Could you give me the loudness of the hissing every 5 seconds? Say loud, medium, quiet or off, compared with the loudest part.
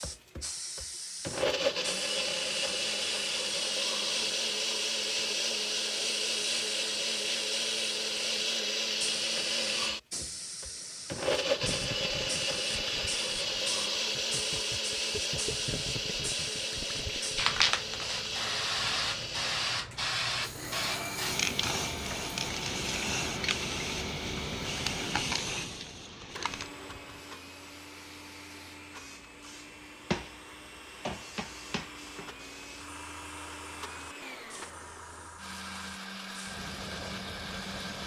medium, medium, medium, loud, loud, medium, medium, quiet.